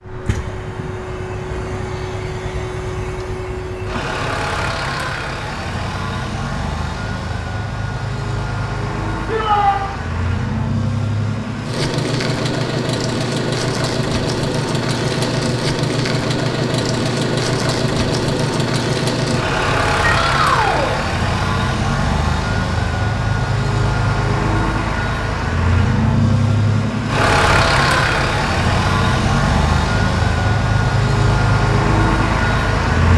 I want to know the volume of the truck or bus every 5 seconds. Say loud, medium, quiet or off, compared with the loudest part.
medium, medium, loud, loud, loud, loud, loud.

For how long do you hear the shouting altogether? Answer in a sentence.
You can hear the shouting for 2 seconds altogether.